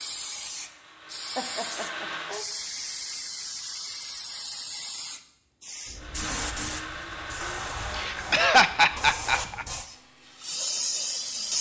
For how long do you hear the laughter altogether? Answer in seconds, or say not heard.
3 s.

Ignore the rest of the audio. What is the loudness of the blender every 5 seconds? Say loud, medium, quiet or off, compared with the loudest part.
loud, loud, quiet.